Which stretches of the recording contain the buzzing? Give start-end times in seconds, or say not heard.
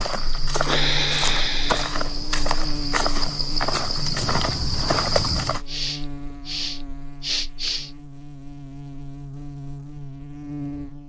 0.1-11.0.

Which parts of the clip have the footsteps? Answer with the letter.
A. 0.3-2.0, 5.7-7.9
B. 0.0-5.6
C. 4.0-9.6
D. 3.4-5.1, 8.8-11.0
B.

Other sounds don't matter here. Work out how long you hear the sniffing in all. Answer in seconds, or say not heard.
4 s.